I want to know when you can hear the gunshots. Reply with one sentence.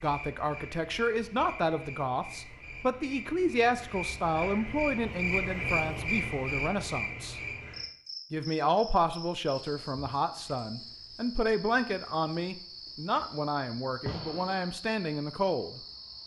The gunshots can be heard from 14.1 to 14.7 s.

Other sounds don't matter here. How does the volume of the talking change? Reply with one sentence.
The volume of the talking stays about the same.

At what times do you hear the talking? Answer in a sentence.
You can hear the talking from 0.0 to 7.4 s and from 8.3 to 15.8 s.